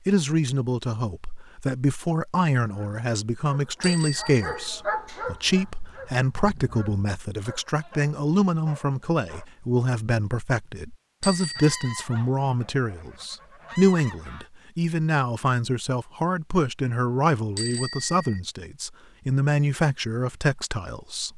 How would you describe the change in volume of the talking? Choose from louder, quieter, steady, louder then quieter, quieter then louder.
steady.